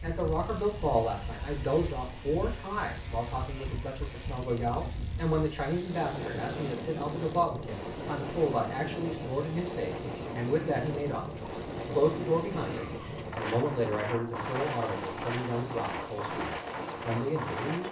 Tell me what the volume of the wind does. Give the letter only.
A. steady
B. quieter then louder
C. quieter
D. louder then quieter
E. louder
E.